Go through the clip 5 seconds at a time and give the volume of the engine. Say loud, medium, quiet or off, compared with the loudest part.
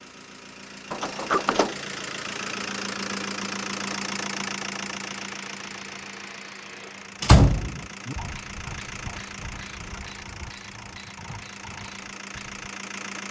loud, medium, medium.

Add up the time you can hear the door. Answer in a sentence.
The door can be heard for 2 seconds in total.